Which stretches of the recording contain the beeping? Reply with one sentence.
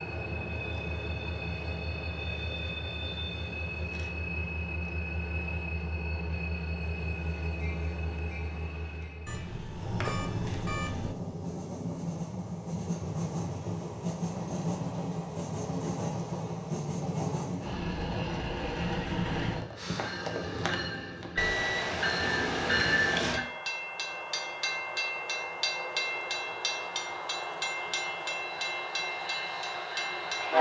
The beeping can be heard from 9.2 to 11.2 s and from 21.4 to 23.4 s.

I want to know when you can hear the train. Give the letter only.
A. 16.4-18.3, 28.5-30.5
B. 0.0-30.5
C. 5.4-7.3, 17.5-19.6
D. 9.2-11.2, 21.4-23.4
B.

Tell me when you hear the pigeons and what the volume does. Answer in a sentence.
You can't hear the pigeons here.